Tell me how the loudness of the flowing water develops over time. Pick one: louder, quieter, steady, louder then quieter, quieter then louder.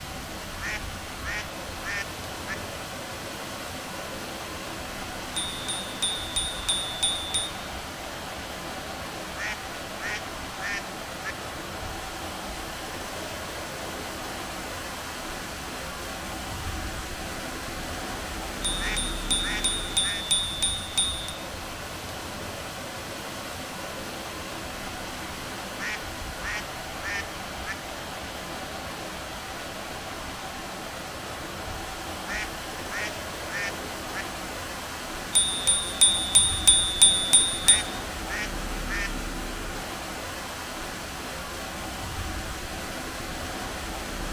steady.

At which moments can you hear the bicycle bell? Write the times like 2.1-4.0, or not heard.
5.3-7.5, 18.8-21.3, 35.4-37.9.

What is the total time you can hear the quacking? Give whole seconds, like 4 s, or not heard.
11 s.